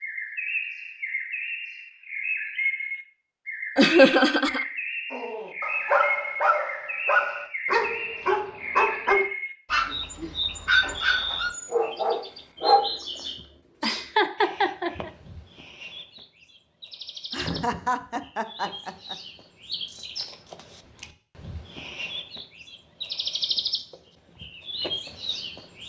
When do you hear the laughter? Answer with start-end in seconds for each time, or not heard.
3.8-4.7, 13.8-15.1, 17.3-19.1.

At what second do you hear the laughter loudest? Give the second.
4 s.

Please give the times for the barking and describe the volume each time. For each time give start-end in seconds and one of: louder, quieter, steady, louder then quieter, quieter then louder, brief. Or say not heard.
5.1-12.8 steady.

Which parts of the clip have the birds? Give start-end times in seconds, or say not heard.
0.0-25.8.